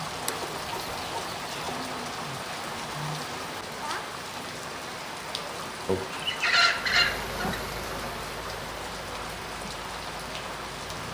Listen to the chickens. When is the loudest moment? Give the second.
7 s.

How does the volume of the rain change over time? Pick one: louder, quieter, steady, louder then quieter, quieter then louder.
steady.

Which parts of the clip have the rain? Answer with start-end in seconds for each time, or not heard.
0.0-11.1.